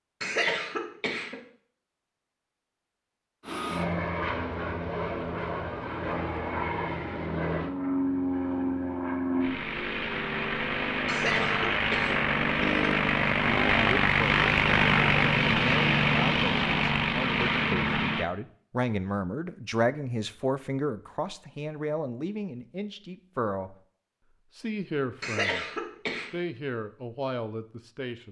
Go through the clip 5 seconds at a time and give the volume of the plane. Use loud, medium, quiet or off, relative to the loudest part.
medium, medium, loud, loud, off, off.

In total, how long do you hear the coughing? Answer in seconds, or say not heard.
4 s.